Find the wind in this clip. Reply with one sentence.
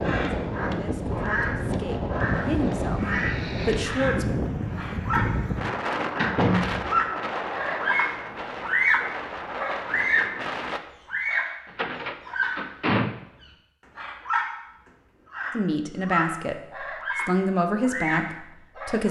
You can hear the wind from 0.0 to 10.8 s.